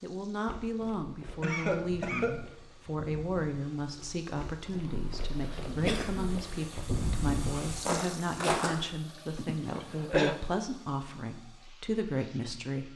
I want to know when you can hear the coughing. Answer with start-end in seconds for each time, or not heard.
1.4-2.5, 4.8-6.3, 9.3-10.4.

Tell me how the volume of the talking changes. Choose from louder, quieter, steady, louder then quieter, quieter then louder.
steady.